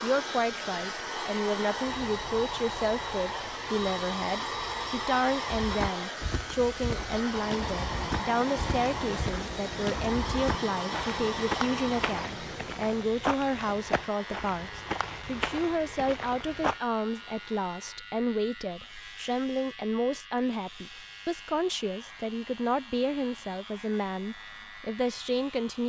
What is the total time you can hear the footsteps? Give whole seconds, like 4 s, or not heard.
11 s.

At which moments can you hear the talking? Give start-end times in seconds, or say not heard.
0.0-25.8.